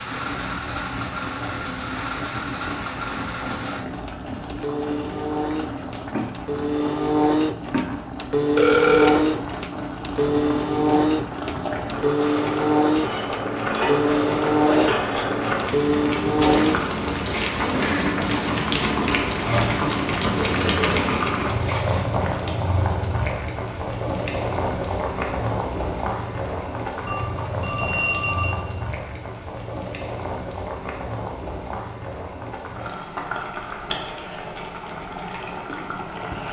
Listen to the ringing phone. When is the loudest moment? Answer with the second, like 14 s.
9 s.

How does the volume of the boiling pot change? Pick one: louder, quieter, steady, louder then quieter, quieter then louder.
louder then quieter.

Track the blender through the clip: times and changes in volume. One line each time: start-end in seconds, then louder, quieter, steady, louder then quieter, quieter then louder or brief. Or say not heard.
0.0-16.8 louder
17.7-18.2 brief.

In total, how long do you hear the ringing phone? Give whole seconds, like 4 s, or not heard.
2 s.